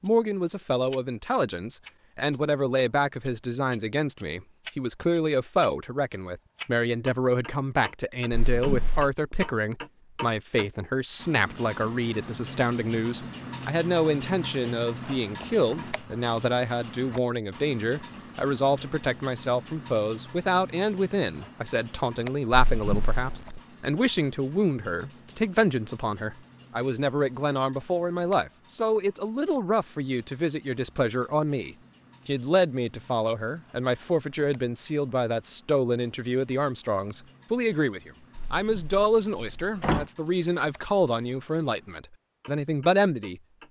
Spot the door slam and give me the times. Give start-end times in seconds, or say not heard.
8.3-9.1, 22.5-23.6, 38.4-40.0.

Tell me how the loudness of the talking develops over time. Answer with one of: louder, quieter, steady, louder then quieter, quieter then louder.
steady.